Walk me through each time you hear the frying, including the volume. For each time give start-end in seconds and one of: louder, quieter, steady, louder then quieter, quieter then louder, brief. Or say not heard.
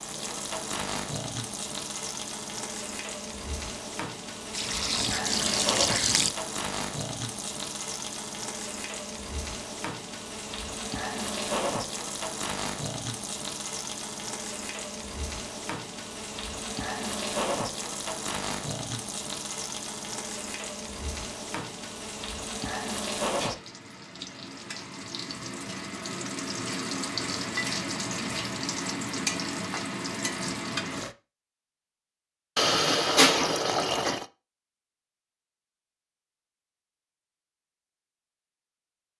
0.0-31.1 steady.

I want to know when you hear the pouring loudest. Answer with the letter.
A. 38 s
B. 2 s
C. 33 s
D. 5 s
C.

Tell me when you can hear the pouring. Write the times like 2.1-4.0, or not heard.
4.5-6.3, 32.5-34.2.